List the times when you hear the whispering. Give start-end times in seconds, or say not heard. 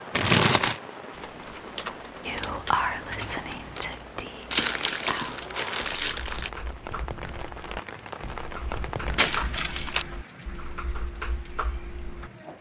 2.2-5.9.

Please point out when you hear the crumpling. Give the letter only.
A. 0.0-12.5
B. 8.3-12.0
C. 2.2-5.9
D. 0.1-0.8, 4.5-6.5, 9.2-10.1
D.